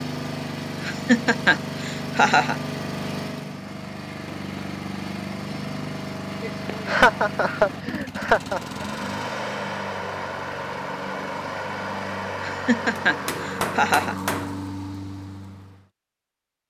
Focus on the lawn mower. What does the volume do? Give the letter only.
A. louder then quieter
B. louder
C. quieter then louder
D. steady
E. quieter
D.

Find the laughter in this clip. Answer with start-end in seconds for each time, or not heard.
0.8-2.5, 6.7-8.6, 12.4-14.2.